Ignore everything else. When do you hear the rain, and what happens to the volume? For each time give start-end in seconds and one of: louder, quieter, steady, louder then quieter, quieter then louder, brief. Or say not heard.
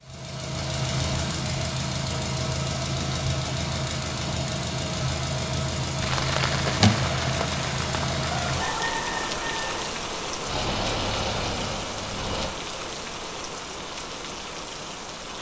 6.0-15.3 quieter.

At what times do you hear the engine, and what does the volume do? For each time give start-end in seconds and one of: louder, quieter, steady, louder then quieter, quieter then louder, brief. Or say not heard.
0.0-8.7 steady
10.4-12.6 brief.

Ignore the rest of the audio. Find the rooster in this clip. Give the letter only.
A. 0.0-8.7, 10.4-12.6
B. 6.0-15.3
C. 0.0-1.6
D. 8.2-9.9
D.